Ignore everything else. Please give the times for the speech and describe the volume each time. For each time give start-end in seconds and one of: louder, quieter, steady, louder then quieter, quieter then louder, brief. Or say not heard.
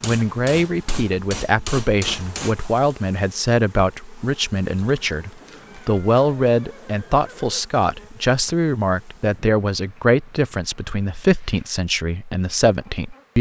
0.0-13.3 steady.